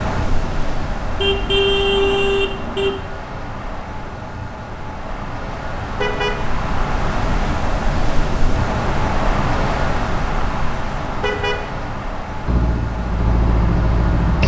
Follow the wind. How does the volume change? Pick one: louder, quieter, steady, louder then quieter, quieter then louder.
louder then quieter.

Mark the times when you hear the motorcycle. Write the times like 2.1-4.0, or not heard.
12.4-14.4.